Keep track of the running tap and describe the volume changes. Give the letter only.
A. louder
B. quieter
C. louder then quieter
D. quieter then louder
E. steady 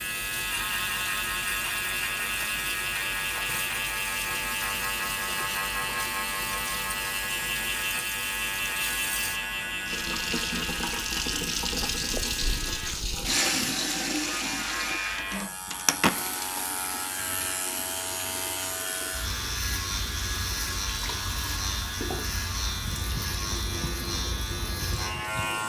C.